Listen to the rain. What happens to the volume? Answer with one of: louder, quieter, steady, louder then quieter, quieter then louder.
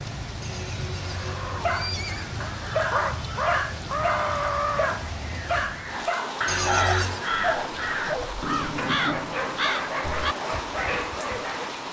steady.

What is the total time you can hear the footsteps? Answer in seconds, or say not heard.
not heard.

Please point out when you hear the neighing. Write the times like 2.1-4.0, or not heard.
0.4-2.3, 6.5-7.2.